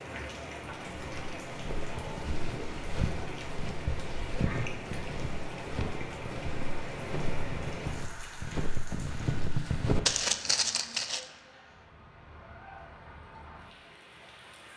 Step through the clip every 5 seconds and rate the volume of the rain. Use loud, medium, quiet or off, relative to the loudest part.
loud, loud, medium.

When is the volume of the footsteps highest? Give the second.
10 s.